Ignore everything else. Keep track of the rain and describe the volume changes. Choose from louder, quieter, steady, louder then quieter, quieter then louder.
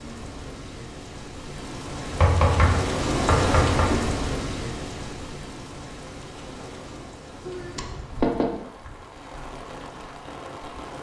louder then quieter.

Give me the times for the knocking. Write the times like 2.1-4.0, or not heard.
2.1-3.9, 7.5-8.4.